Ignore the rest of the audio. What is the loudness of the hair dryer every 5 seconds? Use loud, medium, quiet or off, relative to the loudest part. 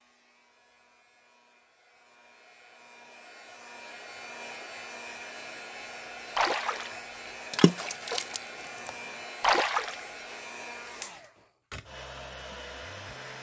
medium, loud, loud.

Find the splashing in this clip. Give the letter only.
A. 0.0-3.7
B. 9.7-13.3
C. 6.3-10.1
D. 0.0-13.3
C.